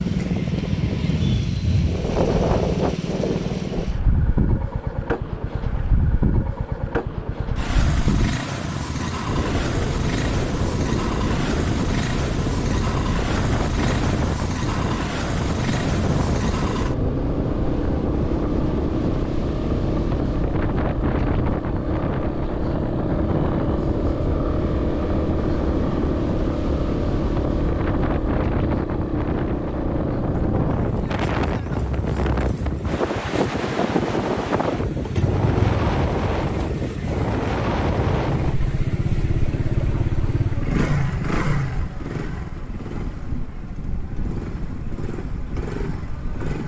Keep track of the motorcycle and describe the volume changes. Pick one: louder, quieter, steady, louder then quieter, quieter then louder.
steady.